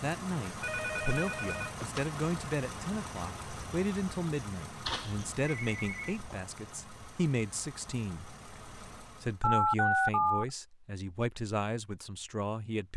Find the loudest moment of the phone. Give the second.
10 s.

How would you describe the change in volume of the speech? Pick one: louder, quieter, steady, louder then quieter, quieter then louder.
steady.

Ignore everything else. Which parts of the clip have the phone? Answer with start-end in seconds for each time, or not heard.
0.6-2.0, 4.8-6.3, 9.4-10.4.